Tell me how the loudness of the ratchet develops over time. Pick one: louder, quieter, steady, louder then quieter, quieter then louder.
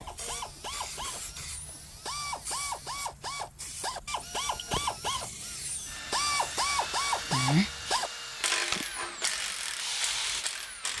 louder then quieter.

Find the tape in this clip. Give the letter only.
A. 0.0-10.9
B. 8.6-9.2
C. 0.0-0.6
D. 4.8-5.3
B.